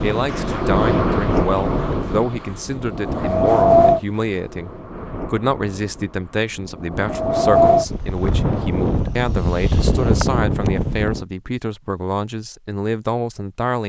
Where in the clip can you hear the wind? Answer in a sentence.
The wind can be heard from 0.0 to 11.2 s.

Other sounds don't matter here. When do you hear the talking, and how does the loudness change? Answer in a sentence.
You can hear the talking from 0.0 to 13.8 s, at a steady volume.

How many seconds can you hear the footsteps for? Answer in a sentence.
You can't hear the footsteps here.